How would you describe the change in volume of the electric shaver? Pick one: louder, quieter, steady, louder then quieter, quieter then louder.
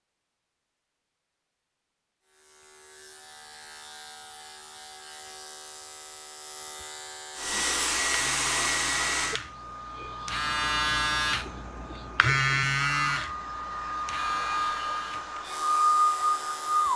louder then quieter.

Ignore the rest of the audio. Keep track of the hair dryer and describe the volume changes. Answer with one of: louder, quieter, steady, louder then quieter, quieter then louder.
quieter then louder.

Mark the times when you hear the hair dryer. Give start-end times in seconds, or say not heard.
7.3-16.9.